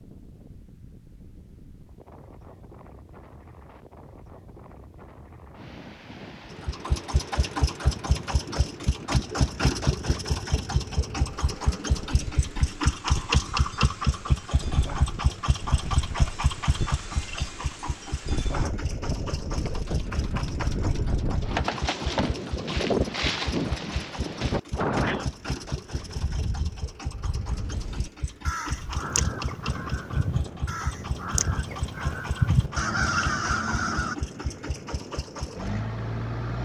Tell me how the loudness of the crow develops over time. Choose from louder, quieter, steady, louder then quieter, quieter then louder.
louder.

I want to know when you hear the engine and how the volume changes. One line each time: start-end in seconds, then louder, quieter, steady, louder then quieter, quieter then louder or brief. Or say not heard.
6.5-36.6 quieter.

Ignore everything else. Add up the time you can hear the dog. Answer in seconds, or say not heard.
not heard.